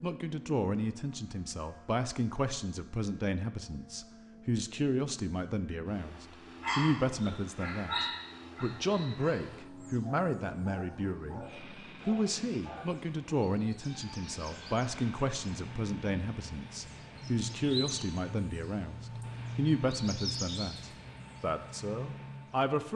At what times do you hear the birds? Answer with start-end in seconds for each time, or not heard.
9.5-22.7.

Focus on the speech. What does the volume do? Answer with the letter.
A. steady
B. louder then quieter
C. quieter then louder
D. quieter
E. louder
A.